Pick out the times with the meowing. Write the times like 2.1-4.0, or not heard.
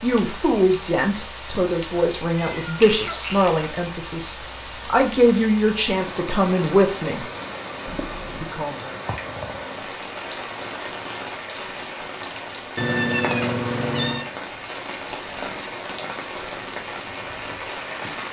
1.9-3.5, 7.8-8.5, 12.8-14.3.